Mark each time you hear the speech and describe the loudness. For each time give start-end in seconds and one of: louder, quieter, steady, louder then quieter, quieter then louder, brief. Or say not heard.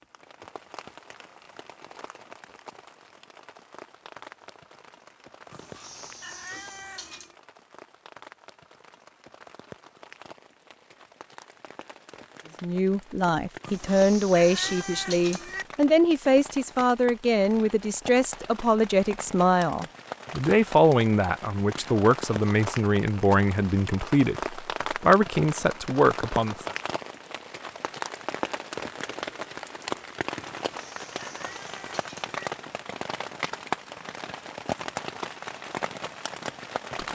12.6-26.7 steady.